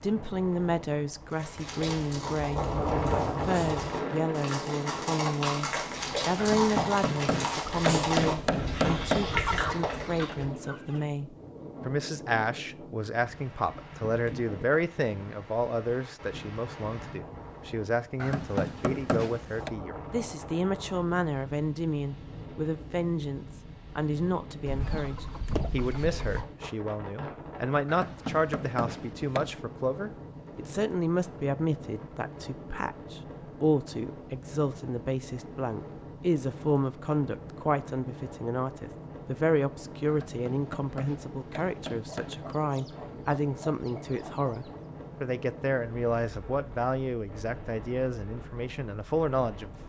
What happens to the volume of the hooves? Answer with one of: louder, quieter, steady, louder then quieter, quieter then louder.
louder.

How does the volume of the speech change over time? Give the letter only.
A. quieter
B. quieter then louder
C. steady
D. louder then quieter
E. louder
C.